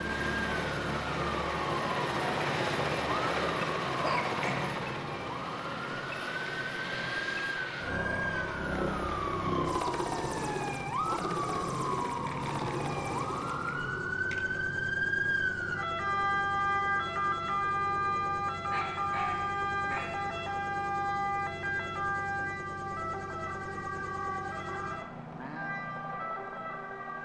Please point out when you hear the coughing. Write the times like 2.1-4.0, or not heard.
not heard.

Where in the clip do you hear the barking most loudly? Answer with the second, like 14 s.
4 s.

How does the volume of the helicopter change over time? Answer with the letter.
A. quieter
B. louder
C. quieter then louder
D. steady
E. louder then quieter
A.